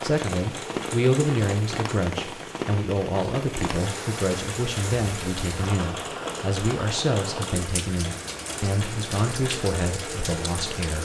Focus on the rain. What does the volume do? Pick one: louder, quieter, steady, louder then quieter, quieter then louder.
steady.